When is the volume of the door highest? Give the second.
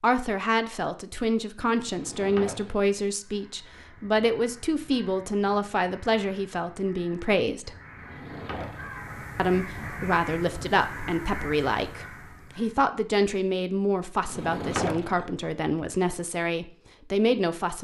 15 s.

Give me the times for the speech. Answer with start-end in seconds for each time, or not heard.
0.0-7.8, 9.3-17.7.